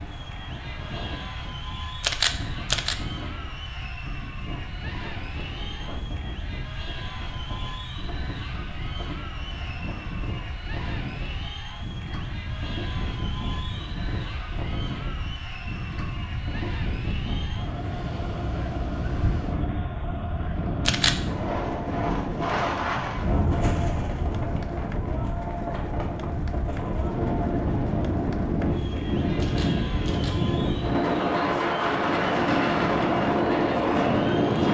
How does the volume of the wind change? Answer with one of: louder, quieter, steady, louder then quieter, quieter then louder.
louder.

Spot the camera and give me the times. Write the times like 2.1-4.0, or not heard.
2.0-3.0, 20.8-21.3, 29.4-30.4.